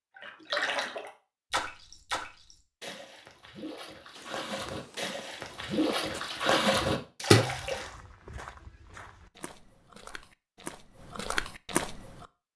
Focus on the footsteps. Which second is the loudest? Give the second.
12 s.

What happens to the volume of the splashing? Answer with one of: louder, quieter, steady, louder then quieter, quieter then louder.
quieter then louder.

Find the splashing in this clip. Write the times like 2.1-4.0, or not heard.
0.1-7.9.